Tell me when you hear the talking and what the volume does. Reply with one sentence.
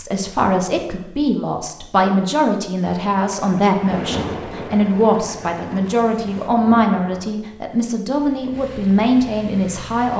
The talking can be heard from 0.0 to 10.1 s, at a steady volume.